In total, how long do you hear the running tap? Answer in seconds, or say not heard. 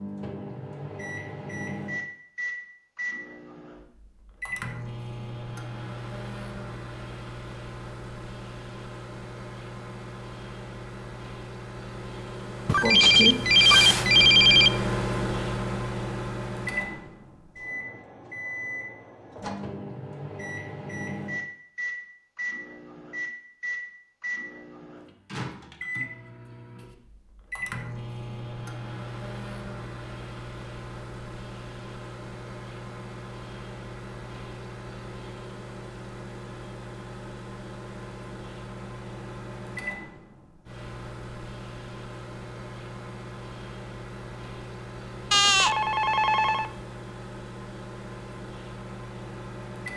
not heard.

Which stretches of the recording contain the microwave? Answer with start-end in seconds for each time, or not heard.
0.0-49.9.